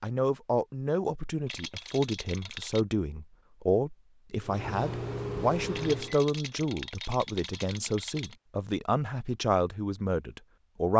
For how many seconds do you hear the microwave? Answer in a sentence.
The microwave can be heard for 2 seconds in total.